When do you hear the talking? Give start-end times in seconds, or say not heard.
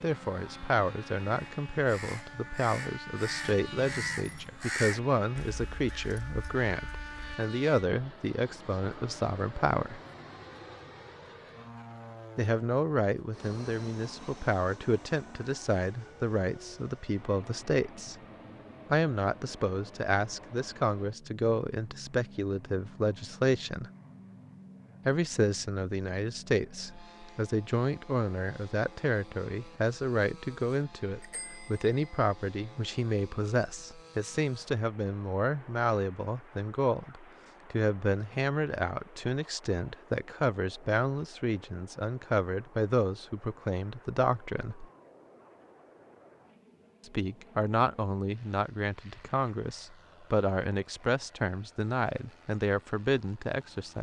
0.0-10.0, 12.3-18.1, 18.9-23.9, 25.1-44.9, 47.0-53.9.